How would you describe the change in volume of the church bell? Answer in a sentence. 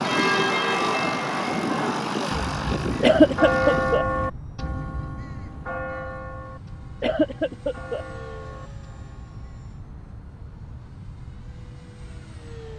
The volume of the church bell goes down.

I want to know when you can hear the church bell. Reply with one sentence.
You can hear the church bell from 0.0 to 9.8 s.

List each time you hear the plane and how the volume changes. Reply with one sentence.
You can hear the plane from 0.0 to 12.7 s, getting quieter.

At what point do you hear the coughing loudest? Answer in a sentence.
The loudest moment of the coughing is at 3 seconds.